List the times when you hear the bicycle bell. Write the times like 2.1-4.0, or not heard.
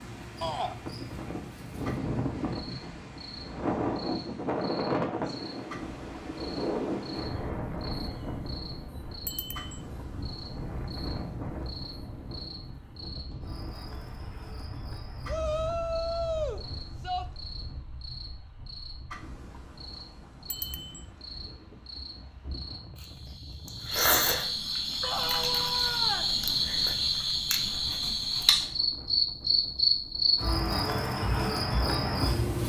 9.2-9.8, 20.5-21.1.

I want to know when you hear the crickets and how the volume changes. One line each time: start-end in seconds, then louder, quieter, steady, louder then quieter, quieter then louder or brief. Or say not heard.
0.0-32.6 louder.